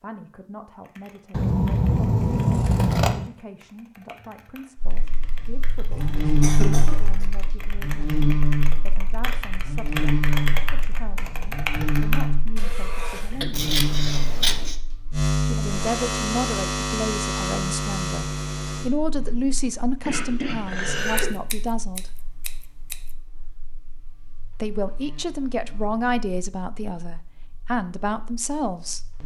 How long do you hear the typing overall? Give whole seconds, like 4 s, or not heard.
12 s.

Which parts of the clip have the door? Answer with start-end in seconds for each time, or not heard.
not heard.